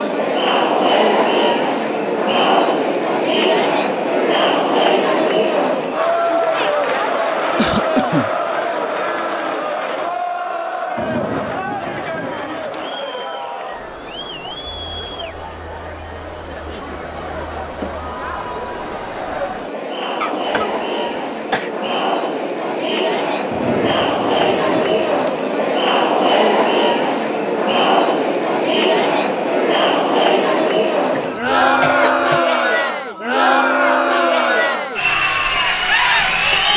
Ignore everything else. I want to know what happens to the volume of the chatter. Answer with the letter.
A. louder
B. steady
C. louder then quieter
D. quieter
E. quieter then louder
E.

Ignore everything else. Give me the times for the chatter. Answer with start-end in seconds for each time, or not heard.
0.0-36.7.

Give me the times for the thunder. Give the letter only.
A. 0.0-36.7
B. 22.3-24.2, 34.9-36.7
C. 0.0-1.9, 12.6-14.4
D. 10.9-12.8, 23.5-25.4
D.